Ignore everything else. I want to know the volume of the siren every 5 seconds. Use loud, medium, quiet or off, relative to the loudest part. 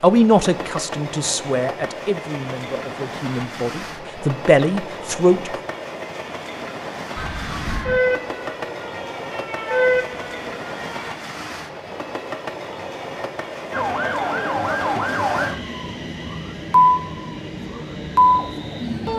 off, medium, medium, loud.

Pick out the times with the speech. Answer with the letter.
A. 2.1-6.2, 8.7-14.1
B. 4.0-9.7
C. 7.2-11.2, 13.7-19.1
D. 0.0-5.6
D.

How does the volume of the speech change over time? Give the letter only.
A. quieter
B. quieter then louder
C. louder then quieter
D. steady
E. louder
B.